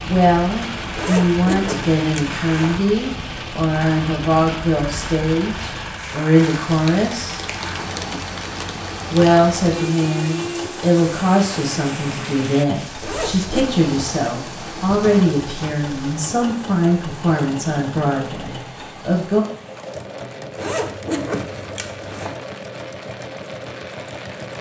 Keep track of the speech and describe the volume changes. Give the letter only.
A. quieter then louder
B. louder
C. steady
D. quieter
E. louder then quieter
C.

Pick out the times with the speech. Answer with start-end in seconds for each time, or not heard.
0.0-7.4, 9.1-19.4.